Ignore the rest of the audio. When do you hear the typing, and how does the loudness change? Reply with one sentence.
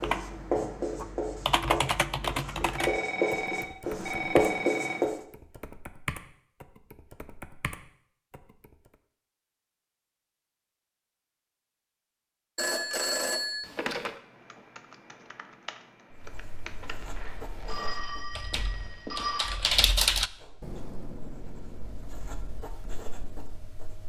You can hear the typing from 0.0 to 8.9 s, getting quieter; and from 14.1 to 23.7 s, getting louder then quieter.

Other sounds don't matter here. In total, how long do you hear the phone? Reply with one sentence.
You can hear the phone for 7 seconds altogether.